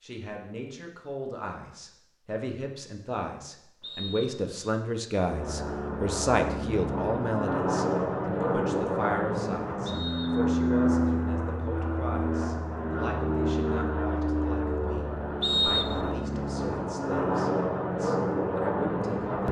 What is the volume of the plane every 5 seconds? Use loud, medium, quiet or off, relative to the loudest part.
off, loud, loud, loud.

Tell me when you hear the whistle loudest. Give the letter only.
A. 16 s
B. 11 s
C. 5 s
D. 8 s
A.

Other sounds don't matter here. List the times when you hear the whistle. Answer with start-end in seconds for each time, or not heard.
3.8-4.5, 9.8-10.4, 15.4-16.1.